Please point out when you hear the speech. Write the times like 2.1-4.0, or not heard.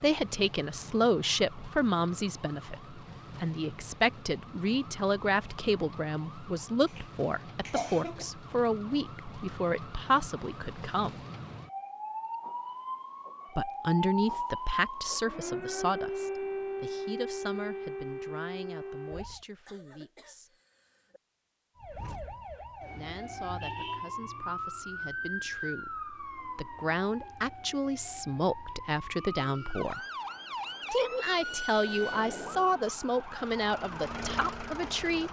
0.0-11.2, 13.6-20.6, 22.9-30.0, 30.9-35.2.